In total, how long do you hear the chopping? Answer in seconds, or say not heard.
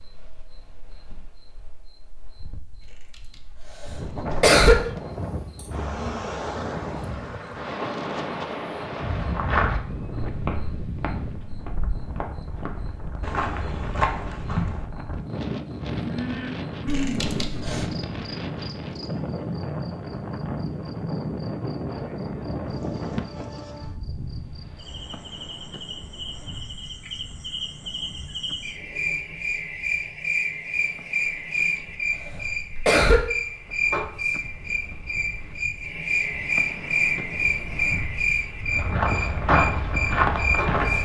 not heard.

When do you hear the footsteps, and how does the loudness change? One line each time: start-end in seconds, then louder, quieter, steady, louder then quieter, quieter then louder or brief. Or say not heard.
8.9-14.8 quieter then louder
38.7-40.9 brief.